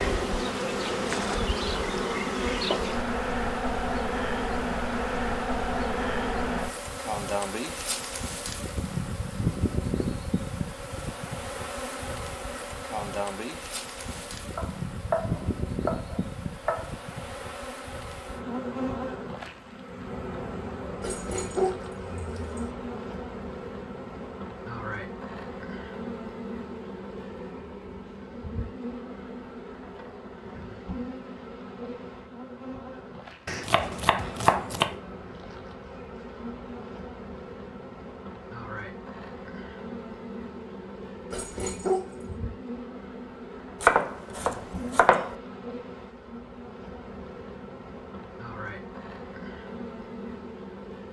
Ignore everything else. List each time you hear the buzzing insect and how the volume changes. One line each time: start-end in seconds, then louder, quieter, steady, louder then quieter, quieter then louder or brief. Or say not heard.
0.0-51.0 quieter.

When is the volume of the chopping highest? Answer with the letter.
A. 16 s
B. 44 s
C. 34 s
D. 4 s
B.